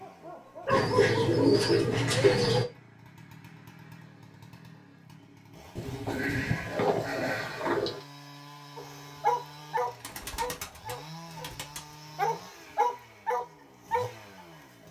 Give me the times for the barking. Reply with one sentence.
You can hear the barking from 0.0 to 1.6 s, from 8.8 to 11.5 s and from 12.2 to 14.2 s.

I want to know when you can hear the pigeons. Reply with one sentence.
The pigeons can be heard from 0.7 to 2.6 s, from 5.8 to 8.1 s and from 10.0 to 11.9 s.